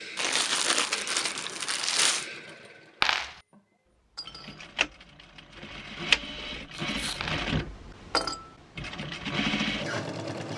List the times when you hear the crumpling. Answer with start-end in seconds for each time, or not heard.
0.1-2.2, 6.7-7.3.